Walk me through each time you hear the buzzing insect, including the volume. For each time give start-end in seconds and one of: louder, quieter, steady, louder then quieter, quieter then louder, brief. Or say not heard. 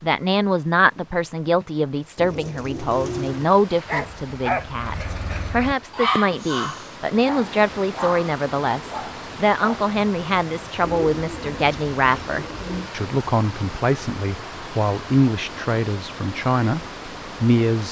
not heard.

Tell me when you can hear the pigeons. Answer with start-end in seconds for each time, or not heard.
2.1-3.5, 10.8-12.9.